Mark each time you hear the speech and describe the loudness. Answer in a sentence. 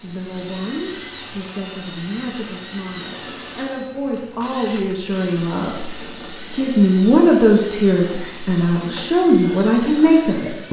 The speech can be heard from 0.0 to 10.6 s, getting louder.